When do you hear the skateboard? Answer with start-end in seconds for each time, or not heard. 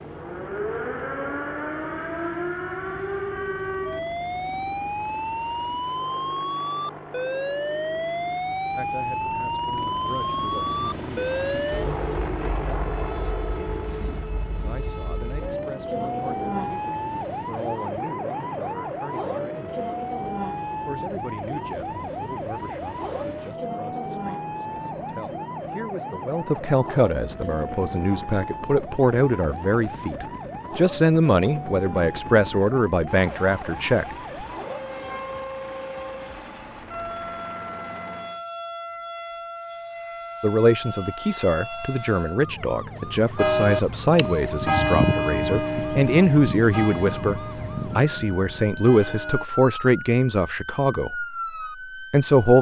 not heard.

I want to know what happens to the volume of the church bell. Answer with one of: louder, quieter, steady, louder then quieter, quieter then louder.
quieter.